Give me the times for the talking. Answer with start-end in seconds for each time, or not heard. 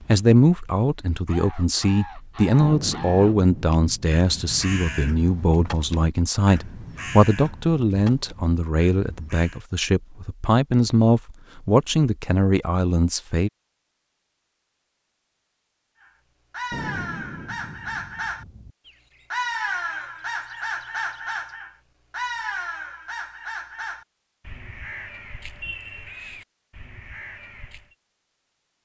0.1-13.5.